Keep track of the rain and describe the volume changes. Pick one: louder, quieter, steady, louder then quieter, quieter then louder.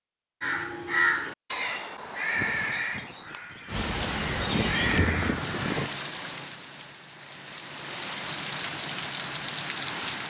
quieter then louder.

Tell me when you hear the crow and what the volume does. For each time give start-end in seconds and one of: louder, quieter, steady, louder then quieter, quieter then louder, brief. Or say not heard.
0.4-5.9 quieter then louder.